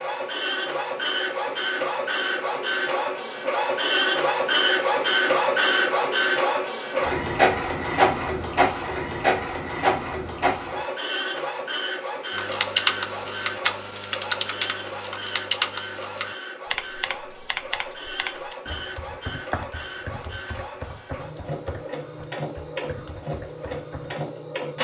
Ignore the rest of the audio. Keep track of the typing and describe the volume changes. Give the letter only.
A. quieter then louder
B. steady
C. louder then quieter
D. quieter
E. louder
D.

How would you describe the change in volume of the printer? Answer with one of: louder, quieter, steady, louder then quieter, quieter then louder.
quieter.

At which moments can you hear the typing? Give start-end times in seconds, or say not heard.
12.3-24.1.